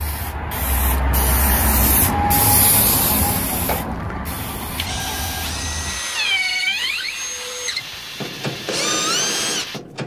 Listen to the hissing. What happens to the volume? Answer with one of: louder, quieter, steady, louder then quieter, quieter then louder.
quieter.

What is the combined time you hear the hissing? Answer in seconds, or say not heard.
10 s.